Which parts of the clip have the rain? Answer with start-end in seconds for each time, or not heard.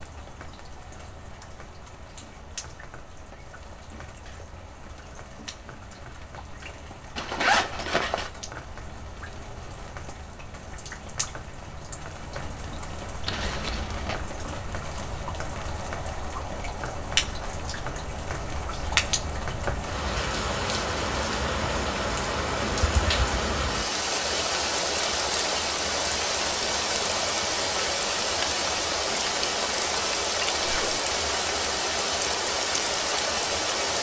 0.0-33.9.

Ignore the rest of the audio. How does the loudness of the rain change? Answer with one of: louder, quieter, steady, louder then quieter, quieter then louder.
louder.